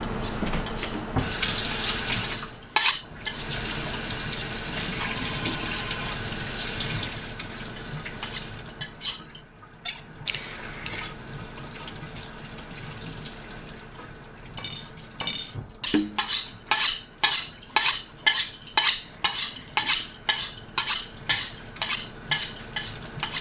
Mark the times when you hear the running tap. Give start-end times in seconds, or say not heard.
0.0-23.3.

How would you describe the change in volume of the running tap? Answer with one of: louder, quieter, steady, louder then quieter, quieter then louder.
quieter.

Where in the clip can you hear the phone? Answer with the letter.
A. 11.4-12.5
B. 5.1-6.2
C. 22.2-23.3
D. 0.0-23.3
B.